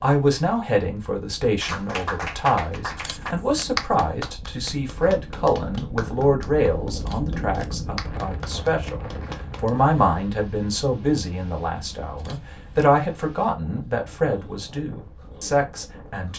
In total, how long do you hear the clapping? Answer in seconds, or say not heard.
8 s.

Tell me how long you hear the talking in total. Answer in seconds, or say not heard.
16 s.